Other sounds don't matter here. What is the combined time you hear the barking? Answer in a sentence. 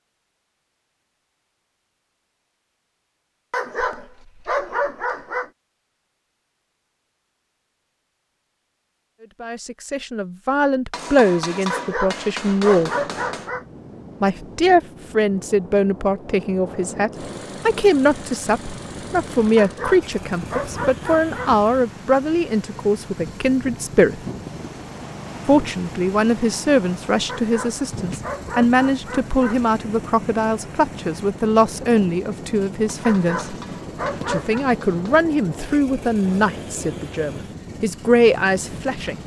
The barking can be heard for 10 seconds in total.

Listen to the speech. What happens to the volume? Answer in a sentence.
The volume of the speech stays about the same.